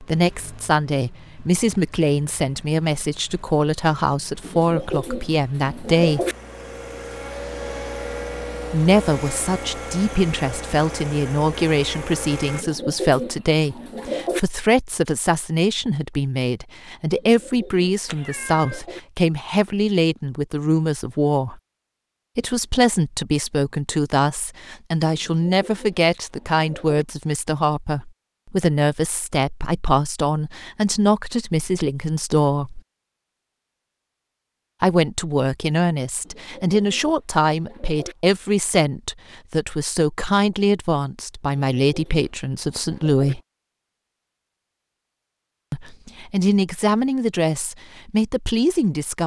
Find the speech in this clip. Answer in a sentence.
The speech can be heard from 0.0 to 6.2 s, from 8.7 to 21.6 s, from 22.4 to 32.8 s, from 34.8 to 43.4 s and from 45.7 to 49.2 s.